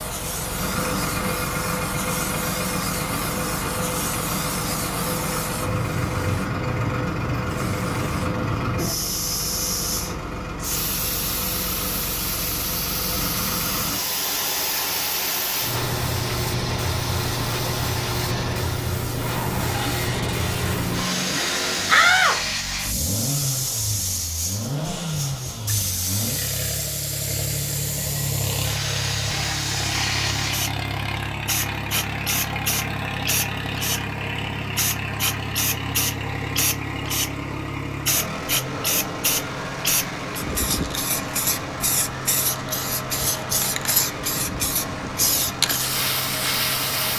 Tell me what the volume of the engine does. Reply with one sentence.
The volume of the engine stays about the same.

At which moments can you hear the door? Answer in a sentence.
You can hear the door from 21.9 to 22.9 s.